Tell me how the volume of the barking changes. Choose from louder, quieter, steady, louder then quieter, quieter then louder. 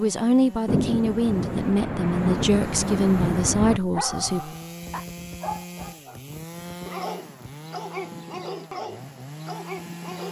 steady.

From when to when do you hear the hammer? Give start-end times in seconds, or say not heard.
not heard.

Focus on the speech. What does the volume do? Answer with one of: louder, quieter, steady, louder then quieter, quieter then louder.
steady.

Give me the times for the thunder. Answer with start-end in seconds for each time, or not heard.
0.7-3.8.